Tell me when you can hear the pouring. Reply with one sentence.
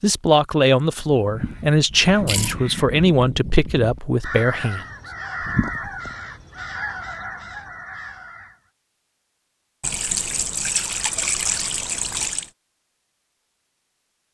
You can hear the pouring from 1.2 to 2.5 s, from 5.4 to 6.1 s and from 9.8 to 12.5 s.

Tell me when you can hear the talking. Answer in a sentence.
You can hear the talking from 0.0 to 4.8 s.